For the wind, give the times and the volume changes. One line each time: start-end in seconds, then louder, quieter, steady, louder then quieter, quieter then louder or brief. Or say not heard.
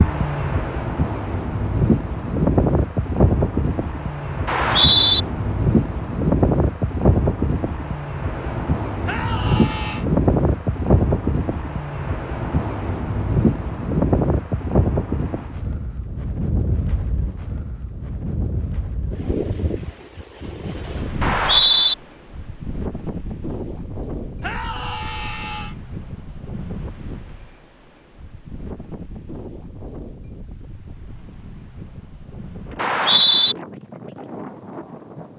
0.0-35.3 quieter.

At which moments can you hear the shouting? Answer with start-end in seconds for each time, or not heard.
9.1-10.1, 24.4-25.8.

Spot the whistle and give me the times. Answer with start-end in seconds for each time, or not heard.
4.5-5.2, 21.2-21.9, 32.8-33.5.